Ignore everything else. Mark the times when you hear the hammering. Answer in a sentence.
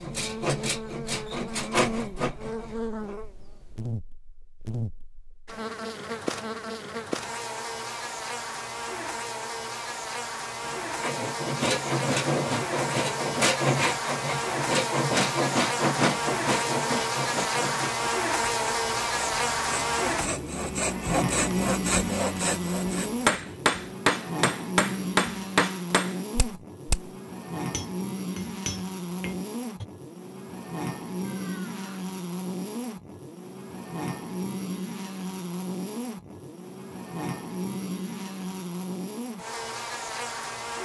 You can hear the hammering from 23.2 to 29.9 s.